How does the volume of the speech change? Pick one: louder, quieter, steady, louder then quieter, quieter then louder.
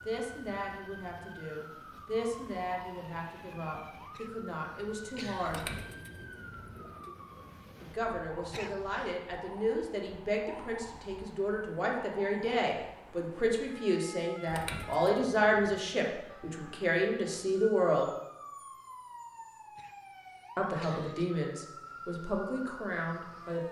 louder.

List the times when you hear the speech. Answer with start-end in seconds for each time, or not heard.
0.1-5.7, 7.8-18.1, 20.6-23.6.